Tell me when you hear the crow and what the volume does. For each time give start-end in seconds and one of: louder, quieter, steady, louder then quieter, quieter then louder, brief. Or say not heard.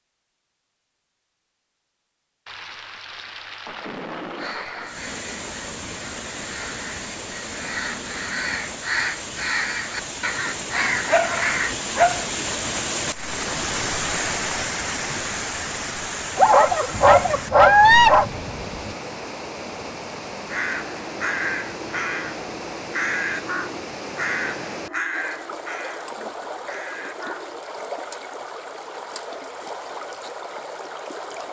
4.3-11.8 louder
20.4-27.6 quieter.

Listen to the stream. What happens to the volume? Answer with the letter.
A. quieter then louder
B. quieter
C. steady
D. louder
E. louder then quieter
E.